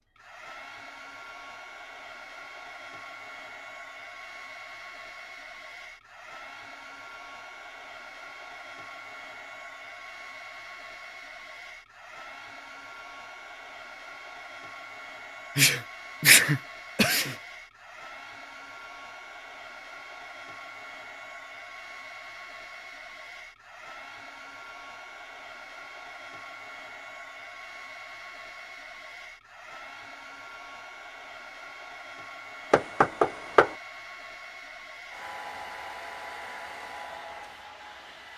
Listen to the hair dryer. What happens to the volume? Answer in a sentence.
The loudness of the hair dryer stays about the same.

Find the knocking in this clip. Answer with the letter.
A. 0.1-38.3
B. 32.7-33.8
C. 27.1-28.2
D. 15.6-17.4
B.